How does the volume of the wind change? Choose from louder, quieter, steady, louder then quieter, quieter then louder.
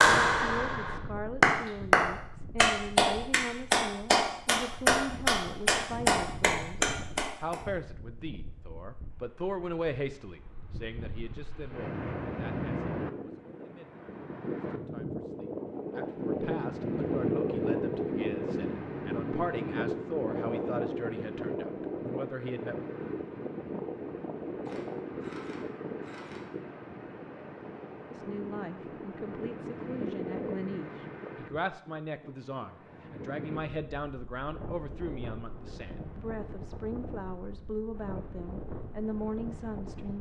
louder then quieter.